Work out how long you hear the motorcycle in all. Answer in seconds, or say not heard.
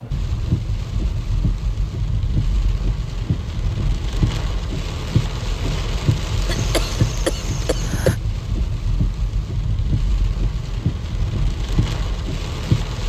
not heard.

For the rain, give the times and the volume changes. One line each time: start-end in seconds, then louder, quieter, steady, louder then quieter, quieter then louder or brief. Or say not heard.
0.0-13.0 steady.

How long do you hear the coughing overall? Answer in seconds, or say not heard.
2 s.